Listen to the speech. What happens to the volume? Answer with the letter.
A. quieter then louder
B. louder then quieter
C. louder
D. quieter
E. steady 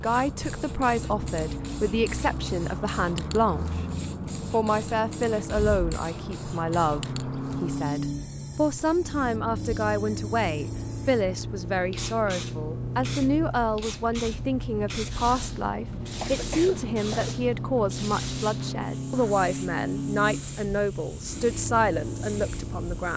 E.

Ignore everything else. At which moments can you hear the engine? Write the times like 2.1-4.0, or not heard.
0.0-23.1.